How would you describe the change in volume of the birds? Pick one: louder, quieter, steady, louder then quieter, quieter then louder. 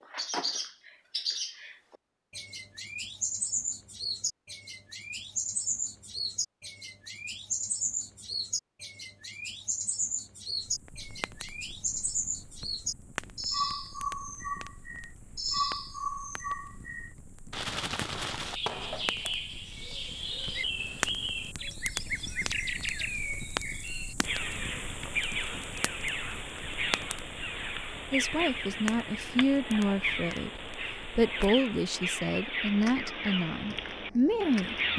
steady.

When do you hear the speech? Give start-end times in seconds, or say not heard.
28.1-34.9.